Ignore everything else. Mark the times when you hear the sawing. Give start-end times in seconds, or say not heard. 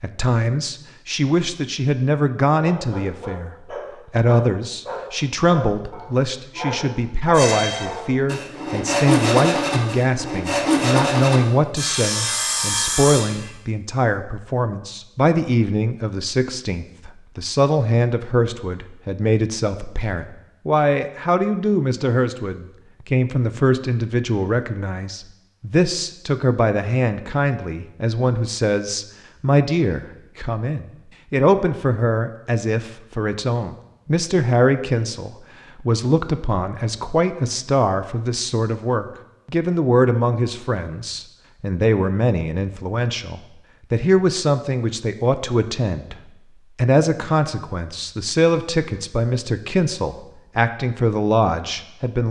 7.3-13.5.